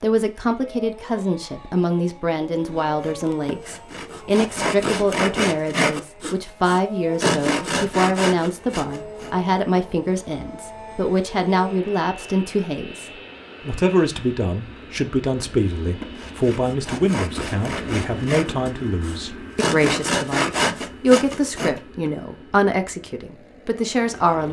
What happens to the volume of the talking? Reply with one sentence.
The volume of the talking stays about the same.